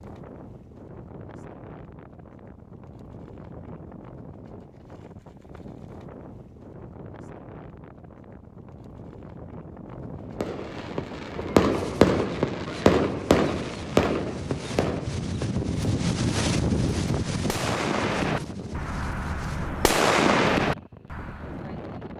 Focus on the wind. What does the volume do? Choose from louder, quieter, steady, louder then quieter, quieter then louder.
louder then quieter.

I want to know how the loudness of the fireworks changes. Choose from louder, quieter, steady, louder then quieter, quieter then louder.
quieter then louder.